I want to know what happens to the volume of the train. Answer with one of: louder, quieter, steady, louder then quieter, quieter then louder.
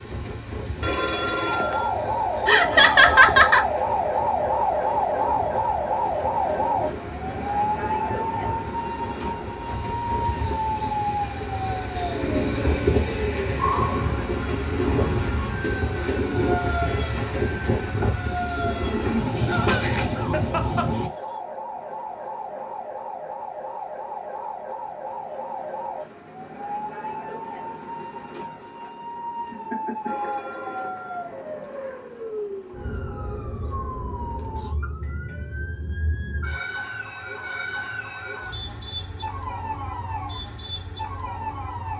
louder.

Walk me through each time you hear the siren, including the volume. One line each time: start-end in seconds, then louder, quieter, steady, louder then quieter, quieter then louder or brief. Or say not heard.
1.4-41.9 quieter.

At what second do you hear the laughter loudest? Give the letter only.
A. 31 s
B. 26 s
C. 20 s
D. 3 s
D.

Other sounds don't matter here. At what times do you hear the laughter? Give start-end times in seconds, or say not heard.
2.5-3.6, 18.9-20.9, 29.5-30.3.